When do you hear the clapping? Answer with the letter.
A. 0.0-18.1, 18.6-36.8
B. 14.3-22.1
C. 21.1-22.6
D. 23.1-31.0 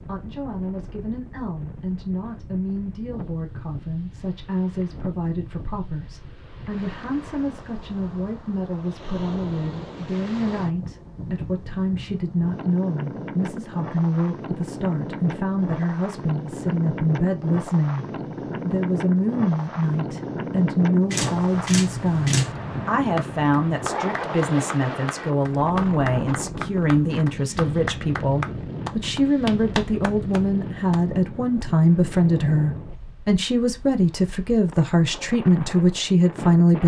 D.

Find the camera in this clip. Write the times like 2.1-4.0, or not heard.
21.1-22.6.